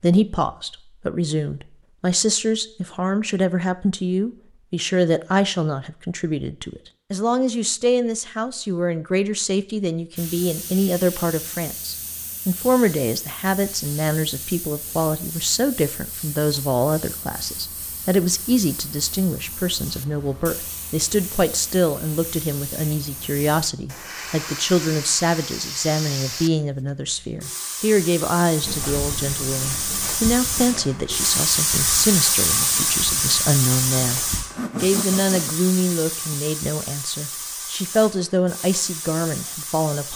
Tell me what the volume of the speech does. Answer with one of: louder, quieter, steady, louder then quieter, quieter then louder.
steady.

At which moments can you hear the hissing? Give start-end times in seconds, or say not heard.
10.2-40.1.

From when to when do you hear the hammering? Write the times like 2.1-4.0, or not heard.
not heard.